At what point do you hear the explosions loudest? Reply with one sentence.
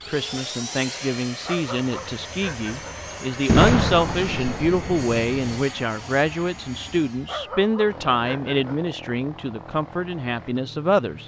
The loudest moment of the explosions is at 4 seconds.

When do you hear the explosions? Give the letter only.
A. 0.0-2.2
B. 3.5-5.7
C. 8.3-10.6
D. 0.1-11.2
B.